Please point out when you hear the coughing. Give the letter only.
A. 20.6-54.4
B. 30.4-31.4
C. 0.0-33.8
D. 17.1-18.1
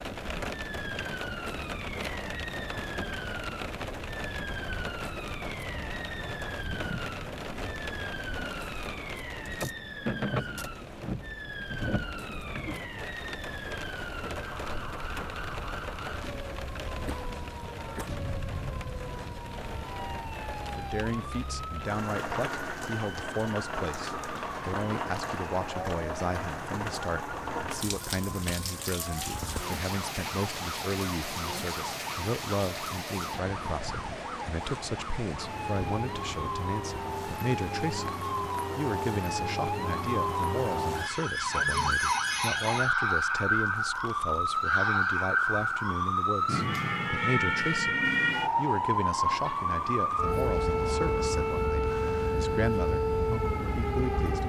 D.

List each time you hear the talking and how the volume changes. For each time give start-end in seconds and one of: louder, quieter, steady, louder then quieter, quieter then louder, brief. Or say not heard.
20.6-54.4 steady.